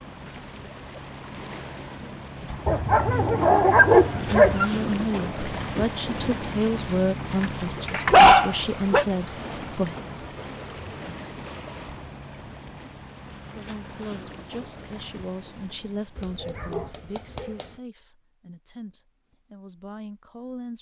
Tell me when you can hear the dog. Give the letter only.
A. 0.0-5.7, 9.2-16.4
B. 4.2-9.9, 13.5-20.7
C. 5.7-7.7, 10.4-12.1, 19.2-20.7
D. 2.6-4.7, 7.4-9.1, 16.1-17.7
D.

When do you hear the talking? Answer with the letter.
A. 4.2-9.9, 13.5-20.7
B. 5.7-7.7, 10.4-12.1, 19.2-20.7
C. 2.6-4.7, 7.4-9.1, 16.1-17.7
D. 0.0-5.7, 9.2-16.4
A.